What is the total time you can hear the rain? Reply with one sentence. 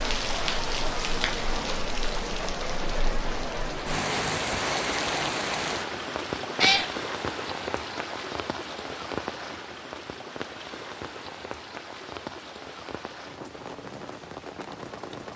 You can hear the rain for 15 seconds altogether.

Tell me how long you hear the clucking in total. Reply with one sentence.
You can't hear the clucking here.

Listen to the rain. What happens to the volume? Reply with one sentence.
The volume of the rain goes down.